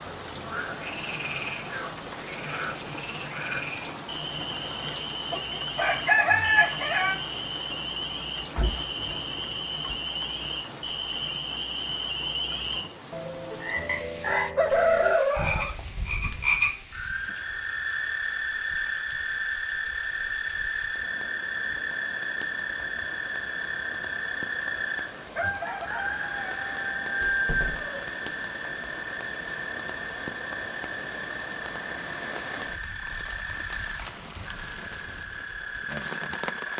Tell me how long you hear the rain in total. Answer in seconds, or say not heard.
37 s.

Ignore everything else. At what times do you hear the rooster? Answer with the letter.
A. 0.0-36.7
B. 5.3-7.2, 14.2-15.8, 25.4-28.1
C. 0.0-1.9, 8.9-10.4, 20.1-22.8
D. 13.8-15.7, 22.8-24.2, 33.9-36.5
B.